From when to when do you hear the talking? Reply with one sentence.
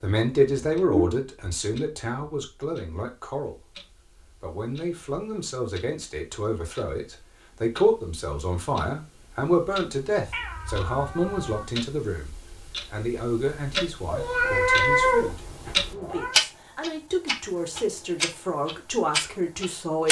You can hear the talking from 0.0 to 3.8 s and from 4.4 to 20.0 s.